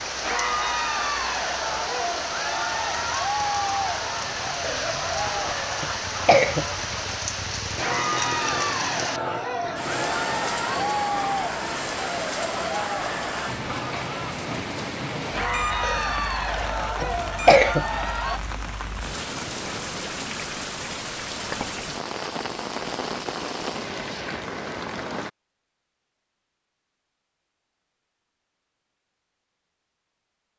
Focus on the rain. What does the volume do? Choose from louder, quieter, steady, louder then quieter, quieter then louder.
steady.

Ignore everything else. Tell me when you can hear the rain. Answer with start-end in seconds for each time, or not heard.
0.0-25.3.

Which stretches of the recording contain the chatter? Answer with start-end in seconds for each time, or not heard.
0.0-18.4.